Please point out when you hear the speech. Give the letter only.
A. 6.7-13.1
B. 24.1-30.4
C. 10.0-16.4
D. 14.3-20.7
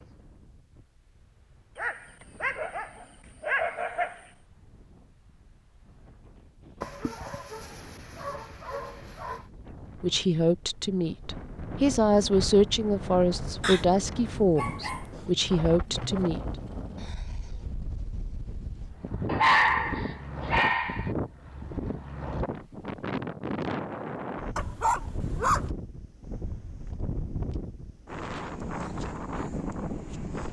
C.